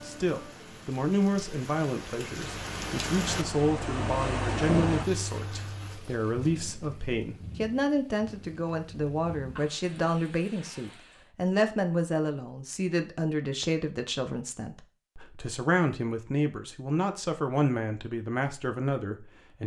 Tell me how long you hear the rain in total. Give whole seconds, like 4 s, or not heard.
11 s.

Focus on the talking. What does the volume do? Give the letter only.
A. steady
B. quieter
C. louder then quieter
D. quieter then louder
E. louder
A.